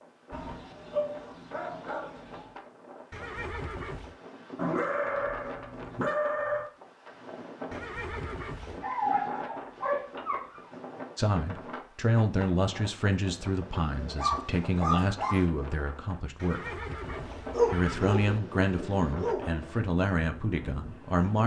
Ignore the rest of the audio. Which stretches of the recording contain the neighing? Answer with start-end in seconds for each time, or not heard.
3.1-4.2, 7.7-8.8, 16.4-18.4.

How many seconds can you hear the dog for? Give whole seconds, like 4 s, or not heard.
10 s.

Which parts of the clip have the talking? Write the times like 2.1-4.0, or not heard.
11.2-21.4.